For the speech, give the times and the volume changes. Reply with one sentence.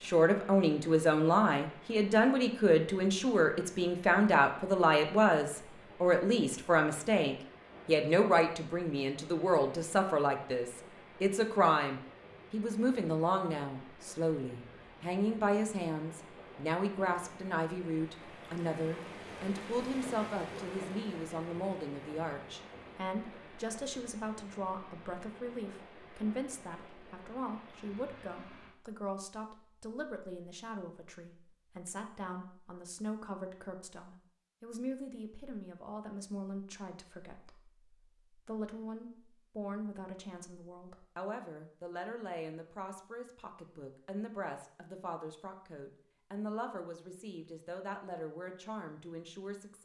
You can hear the speech from 0.0 to 49.8 s, getting quieter.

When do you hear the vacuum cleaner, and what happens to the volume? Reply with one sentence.
The vacuum cleaner can't be heard in this clip.